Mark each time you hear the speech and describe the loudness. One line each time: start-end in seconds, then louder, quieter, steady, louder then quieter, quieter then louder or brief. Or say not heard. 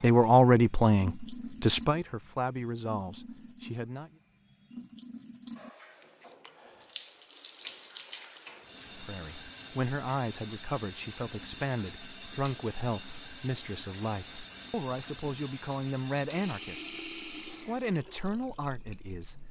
0.0-4.1 quieter
8.9-19.4 steady.